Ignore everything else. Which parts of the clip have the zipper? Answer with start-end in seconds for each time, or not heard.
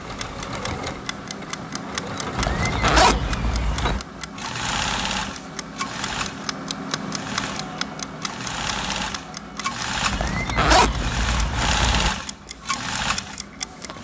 2.4-4.0, 10.1-12.1.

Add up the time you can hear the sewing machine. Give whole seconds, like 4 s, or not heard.
14 s.